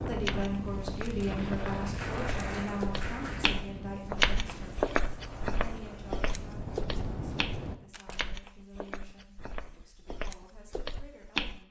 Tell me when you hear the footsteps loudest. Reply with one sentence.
The volume of the footsteps peaks at 4 seconds.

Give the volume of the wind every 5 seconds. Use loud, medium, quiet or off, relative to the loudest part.
loud, loud, off.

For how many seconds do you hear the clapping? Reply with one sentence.
You can hear the clapping for 2 seconds altogether.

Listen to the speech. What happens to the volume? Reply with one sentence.
The loudness of the speech goes down.